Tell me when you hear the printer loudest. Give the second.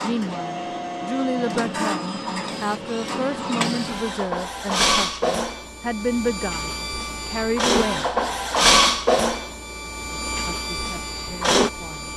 9 s.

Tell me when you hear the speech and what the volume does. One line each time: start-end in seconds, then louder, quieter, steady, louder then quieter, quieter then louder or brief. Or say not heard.
0.0-8.1 steady
10.4-12.1 brief.